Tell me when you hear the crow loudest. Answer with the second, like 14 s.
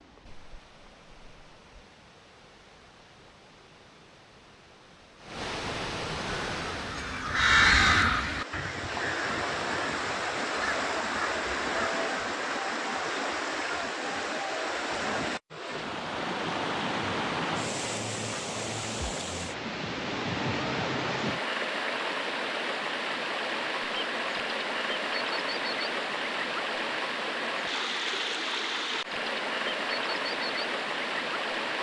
8 s.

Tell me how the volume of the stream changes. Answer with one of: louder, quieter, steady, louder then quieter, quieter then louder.
louder.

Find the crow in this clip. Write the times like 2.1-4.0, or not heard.
6.2-11.9.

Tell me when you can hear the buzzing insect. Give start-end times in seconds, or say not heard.
not heard.